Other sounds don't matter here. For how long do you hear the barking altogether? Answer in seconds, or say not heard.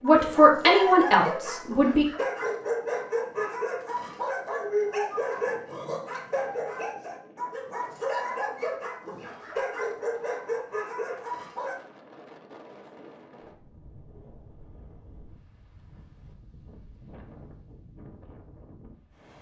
12 s.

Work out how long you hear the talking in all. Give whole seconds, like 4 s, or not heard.
2 s.